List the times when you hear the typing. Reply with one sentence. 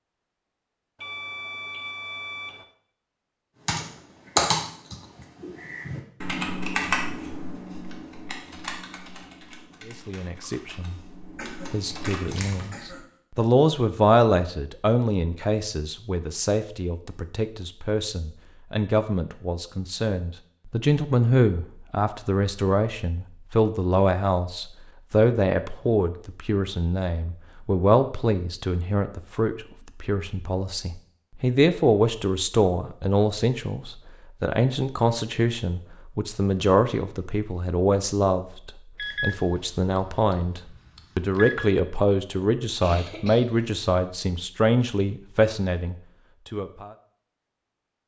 The typing can be heard from 3.6 to 12.7 s.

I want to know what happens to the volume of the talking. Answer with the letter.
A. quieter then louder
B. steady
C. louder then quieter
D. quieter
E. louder
B.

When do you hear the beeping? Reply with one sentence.
The beeping can be heard from 0.9 to 2.6 s and from 39.0 to 41.7 s.